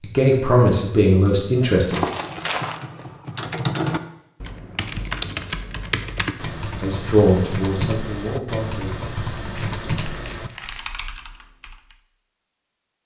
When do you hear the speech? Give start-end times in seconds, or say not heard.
0.0-2.0, 6.8-8.9.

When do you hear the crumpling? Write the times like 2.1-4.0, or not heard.
1.9-2.8, 9.6-11.0.